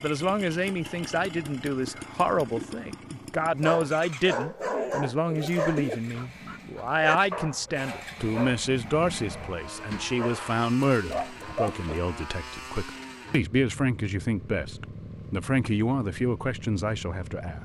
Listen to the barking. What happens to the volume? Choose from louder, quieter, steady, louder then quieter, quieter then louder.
quieter then louder.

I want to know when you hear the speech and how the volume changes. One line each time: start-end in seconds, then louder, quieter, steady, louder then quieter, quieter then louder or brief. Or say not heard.
0.0-17.6 steady.